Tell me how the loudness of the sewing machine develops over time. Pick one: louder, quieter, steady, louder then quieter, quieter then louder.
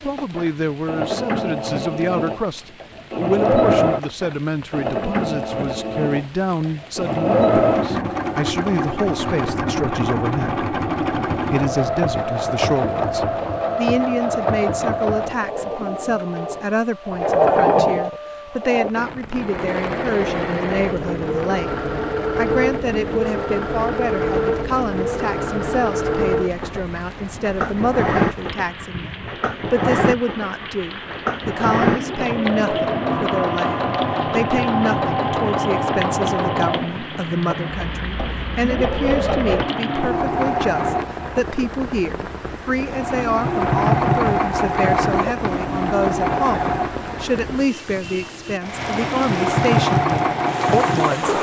steady.